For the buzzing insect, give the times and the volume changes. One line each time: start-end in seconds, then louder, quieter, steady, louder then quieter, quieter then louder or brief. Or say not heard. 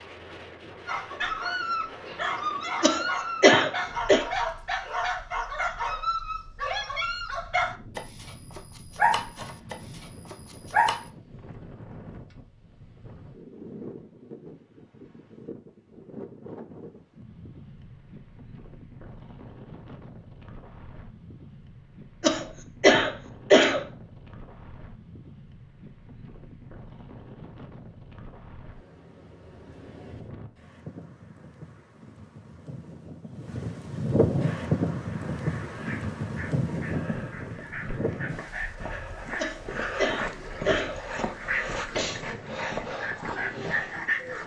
not heard.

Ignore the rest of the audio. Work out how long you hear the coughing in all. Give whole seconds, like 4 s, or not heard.
5 s.